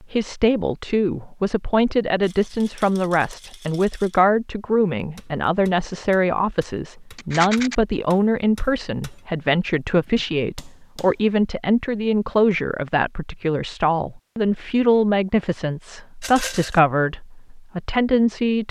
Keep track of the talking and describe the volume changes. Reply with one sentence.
The loudness of the talking stays about the same.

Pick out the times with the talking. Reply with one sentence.
The talking can be heard from 0.0 to 18.6 s.